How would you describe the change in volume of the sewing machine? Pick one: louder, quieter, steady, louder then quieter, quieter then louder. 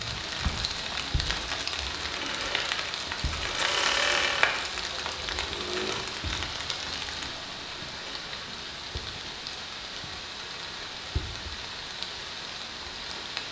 louder then quieter.